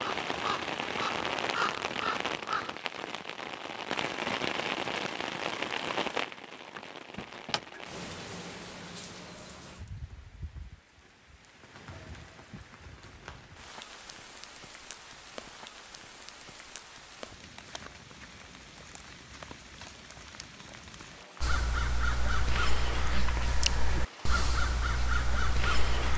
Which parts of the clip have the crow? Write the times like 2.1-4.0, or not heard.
0.0-3.0, 21.4-26.1.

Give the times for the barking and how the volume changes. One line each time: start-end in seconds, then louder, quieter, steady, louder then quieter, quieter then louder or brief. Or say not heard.
not heard.